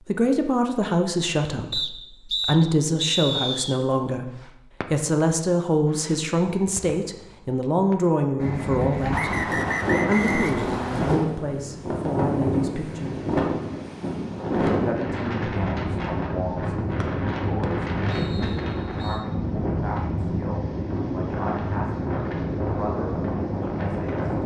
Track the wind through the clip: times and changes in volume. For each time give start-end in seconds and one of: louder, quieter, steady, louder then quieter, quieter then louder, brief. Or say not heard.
8.3-24.4 steady.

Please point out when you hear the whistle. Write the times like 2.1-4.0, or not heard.
1.7-3.8, 9.1-11.2, 17.0-19.2.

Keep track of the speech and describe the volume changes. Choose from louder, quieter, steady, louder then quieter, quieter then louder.
quieter.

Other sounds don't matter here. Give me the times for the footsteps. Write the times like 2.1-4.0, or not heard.
not heard.